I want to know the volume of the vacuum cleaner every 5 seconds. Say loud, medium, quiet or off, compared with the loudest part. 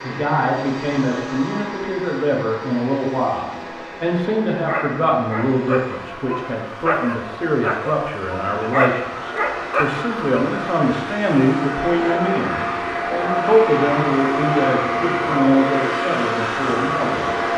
medium, medium, loud, loud.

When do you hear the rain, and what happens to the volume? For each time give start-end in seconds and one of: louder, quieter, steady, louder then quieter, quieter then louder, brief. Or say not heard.
not heard.